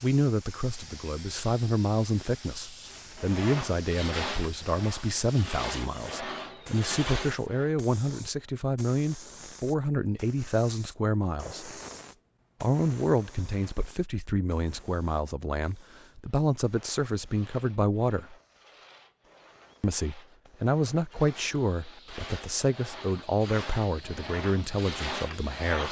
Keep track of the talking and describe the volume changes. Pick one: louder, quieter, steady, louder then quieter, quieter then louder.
steady.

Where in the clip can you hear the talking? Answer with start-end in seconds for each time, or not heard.
0.0-11.7, 12.6-18.4, 19.8-25.8.